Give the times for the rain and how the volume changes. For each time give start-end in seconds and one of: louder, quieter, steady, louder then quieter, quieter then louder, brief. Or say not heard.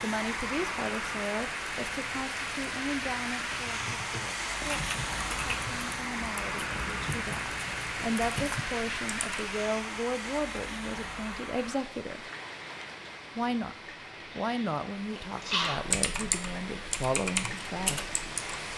0.0-18.7 quieter.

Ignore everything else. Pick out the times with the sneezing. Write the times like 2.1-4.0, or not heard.
14.3-15.9.